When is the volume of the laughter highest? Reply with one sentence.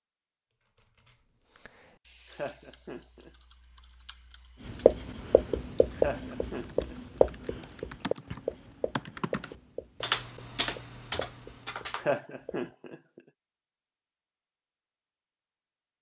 The volume of the laughter peaks at 12 seconds.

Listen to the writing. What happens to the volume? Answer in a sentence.
The loudness of the writing goes down.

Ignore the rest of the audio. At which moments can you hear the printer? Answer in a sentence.
The printer can't be heard in this clip.